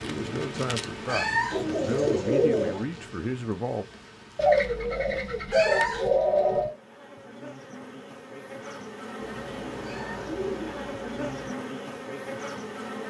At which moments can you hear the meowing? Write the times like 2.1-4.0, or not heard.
1.1-1.6, 5.5-6.1, 9.8-10.3.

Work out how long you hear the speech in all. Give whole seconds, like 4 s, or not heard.
4 s.